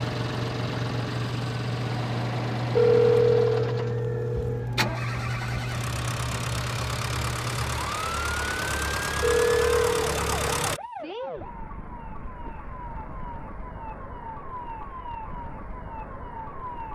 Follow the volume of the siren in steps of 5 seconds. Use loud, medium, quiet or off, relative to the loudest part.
loud, loud, medium, medium.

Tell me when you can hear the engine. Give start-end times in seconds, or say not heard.
0.0-10.8.